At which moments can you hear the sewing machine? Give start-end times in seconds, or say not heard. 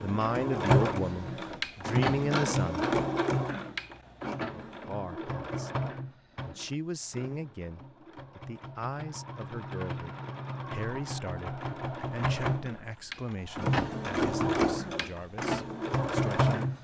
0.0-16.7.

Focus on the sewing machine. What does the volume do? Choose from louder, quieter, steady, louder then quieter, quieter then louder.
quieter then louder.